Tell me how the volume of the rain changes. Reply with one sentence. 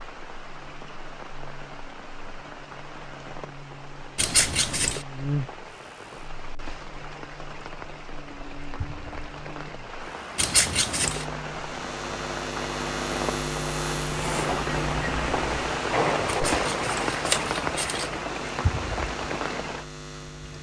The loudness of the rain goes up.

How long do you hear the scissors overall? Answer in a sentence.
You can hear the scissors for 4 seconds altogether.